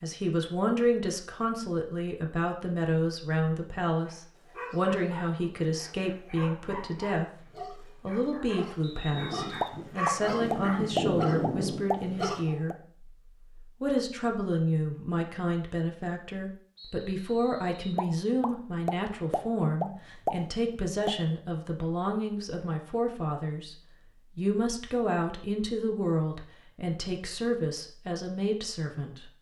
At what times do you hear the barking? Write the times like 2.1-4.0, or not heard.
4.0-12.6.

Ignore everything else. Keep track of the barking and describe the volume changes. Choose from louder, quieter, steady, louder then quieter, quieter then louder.
louder.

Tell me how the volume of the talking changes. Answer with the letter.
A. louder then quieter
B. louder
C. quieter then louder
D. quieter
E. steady
E.